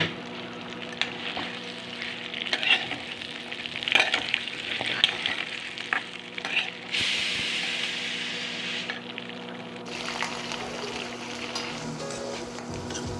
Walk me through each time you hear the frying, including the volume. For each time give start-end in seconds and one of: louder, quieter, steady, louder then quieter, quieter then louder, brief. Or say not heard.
0.0-13.1 quieter.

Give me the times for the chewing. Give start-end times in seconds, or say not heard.
not heard.